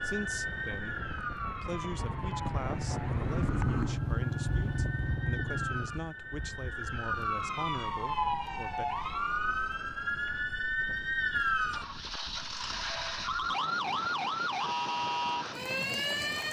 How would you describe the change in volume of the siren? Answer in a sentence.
The volume of the siren goes up.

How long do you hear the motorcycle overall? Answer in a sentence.
You can hear the motorcycle for 4 seconds altogether.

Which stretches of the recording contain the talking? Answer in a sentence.
You can hear the talking from 0.0 to 8.8 s.